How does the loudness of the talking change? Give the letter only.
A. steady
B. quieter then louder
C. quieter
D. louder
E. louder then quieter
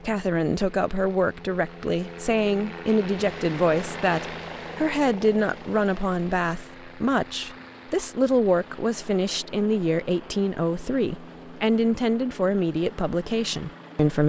A.